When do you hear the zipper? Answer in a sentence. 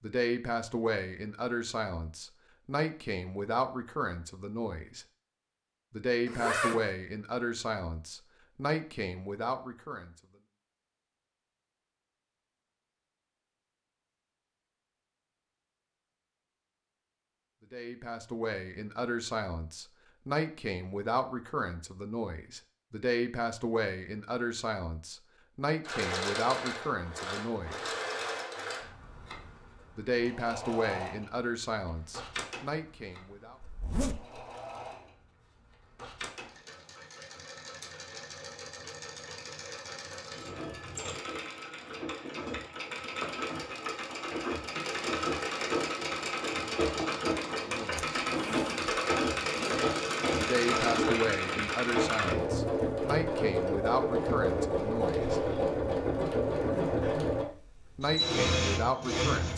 The zipper can be heard from 6.2 to 6.9 s, from 33.6 to 34.5 s and from 48.0 to 49.8 s.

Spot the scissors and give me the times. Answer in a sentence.
The scissors can't be heard in this clip.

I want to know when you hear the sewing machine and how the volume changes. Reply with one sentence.
You can hear the sewing machine from 25.9 to 59.5 s, getting quieter then louder.